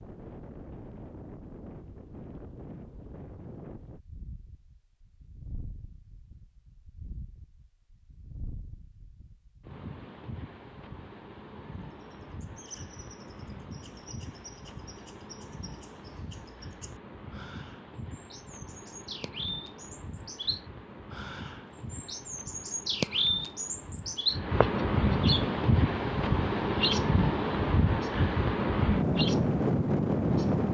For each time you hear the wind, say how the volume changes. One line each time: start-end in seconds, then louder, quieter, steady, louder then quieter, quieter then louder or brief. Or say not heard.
0.0-30.6 louder.